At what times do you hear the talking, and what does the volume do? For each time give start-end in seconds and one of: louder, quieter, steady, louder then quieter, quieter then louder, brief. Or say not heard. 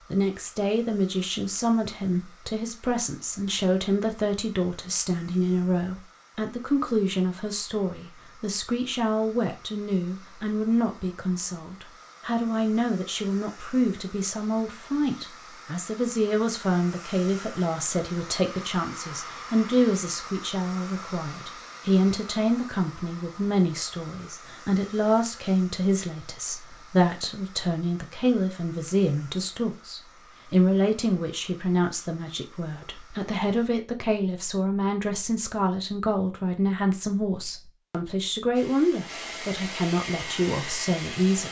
0.1-41.4 steady.